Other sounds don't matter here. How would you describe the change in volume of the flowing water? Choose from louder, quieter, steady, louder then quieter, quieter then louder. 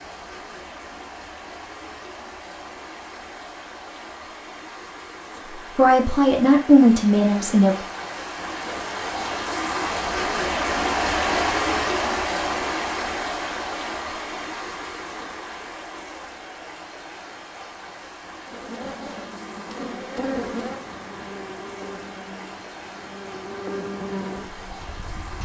louder then quieter.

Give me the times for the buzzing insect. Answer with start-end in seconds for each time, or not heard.
18.4-25.4.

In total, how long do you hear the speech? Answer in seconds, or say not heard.
2 s.